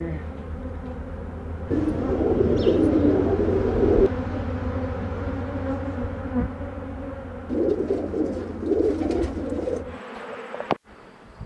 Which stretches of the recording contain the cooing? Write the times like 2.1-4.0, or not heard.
1.7-4.1, 7.5-9.8.